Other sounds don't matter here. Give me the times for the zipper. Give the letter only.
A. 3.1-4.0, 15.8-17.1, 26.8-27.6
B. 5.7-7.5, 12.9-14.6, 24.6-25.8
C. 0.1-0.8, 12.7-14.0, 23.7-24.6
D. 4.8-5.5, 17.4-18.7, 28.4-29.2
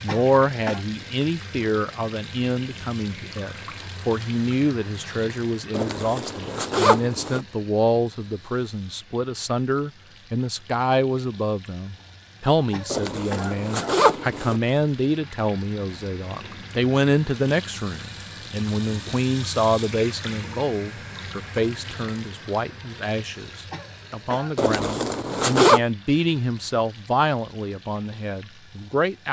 B.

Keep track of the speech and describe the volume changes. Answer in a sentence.
The loudness of the speech stays about the same.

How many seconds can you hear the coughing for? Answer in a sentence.
The coughing can be heard for 3 seconds in total.